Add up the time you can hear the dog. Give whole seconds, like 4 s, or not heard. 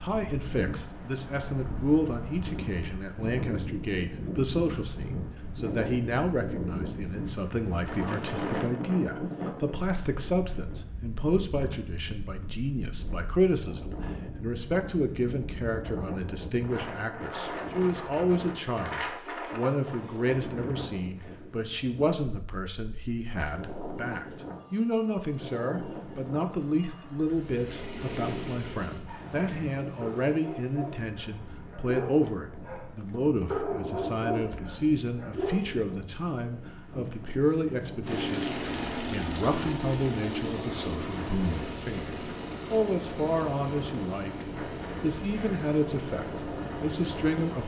7 s.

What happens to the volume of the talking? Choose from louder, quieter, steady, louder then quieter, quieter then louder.
steady.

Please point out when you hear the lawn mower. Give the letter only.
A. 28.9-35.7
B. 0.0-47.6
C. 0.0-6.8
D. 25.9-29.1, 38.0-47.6
D.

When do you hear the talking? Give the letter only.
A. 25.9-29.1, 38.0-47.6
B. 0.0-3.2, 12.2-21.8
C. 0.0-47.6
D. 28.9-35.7
C.